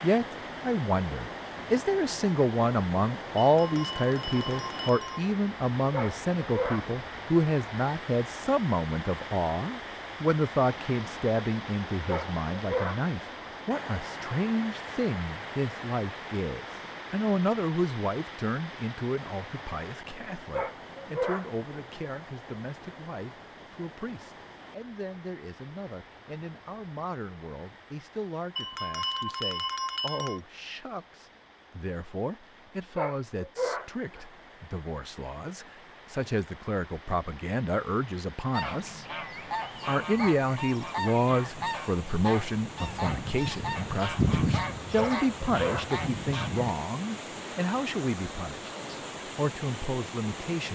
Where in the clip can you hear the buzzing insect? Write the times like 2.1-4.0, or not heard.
not heard.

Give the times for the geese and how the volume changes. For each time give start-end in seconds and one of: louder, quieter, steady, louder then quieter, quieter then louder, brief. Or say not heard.
38.5-46.7 louder then quieter.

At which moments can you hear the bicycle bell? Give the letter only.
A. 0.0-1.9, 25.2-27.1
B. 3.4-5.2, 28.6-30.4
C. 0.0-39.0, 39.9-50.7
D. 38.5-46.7
B.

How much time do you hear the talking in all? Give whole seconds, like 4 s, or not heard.
50 s.